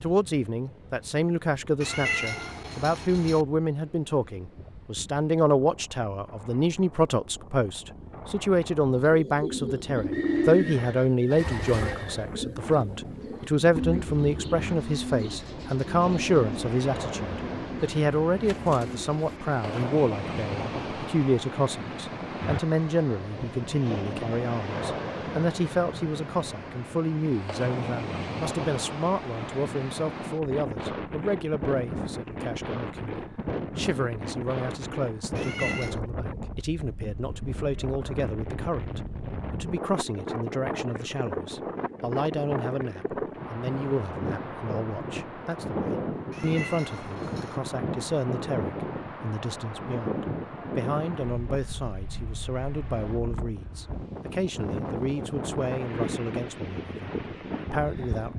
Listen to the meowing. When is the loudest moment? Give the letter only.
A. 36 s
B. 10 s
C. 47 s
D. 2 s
D.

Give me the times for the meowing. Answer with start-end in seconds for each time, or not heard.
1.8-3.5, 35.4-36.0, 46.3-47.6.